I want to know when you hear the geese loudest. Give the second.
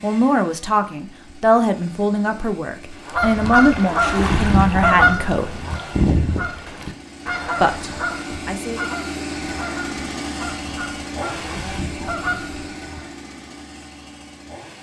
5 s.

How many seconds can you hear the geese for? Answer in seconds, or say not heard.
10 s.